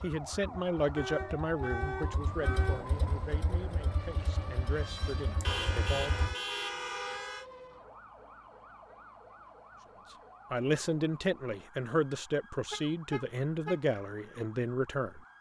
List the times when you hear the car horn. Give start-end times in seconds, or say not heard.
0.9-2.9, 5.4-7.5, 12.7-13.8.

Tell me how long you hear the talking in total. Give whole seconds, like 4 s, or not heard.
11 s.